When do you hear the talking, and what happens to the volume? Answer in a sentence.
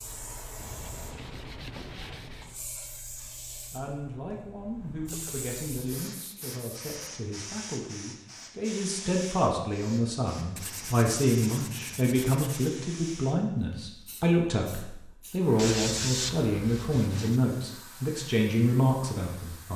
The talking can be heard from 3.6 to 19.7 s, getting louder.